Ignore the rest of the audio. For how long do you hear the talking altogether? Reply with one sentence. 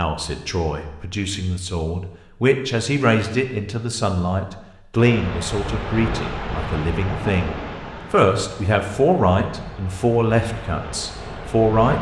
You can hear the talking for 12 seconds altogether.